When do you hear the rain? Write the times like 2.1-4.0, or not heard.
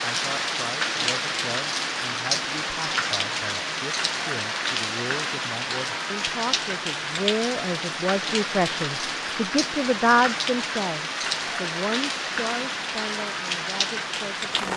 0.0-14.7.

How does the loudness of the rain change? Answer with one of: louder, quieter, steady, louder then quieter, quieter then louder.
steady.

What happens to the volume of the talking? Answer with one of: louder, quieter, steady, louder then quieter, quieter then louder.
louder then quieter.